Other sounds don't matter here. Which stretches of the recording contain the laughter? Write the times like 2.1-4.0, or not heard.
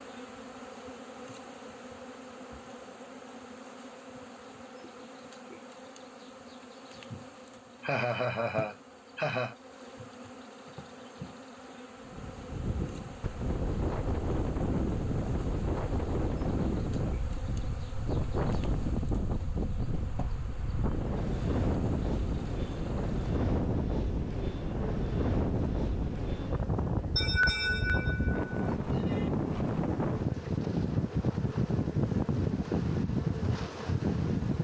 7.8-9.6, 27.1-29.3.